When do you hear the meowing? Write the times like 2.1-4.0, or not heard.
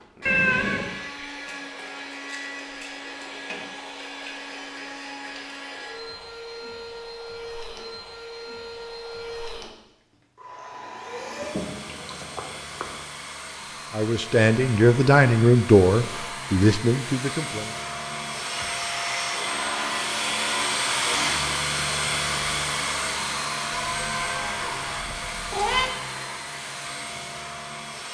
0.2-0.9, 11.4-13.0, 23.7-25.9.